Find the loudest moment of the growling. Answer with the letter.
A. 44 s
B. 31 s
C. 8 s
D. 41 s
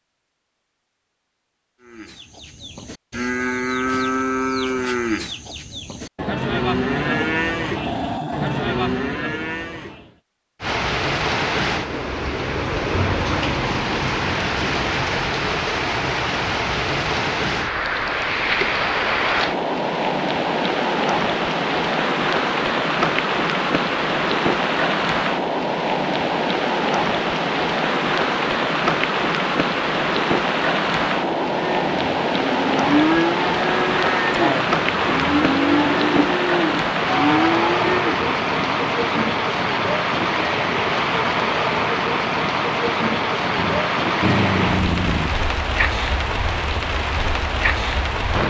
A.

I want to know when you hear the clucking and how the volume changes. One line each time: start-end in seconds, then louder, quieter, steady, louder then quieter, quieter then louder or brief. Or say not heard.
not heard.